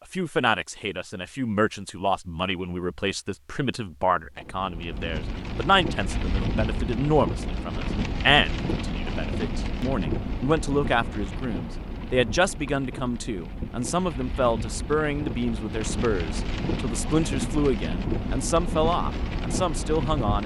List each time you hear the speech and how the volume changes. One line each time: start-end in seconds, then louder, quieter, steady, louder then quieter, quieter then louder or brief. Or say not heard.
0.1-20.4 steady.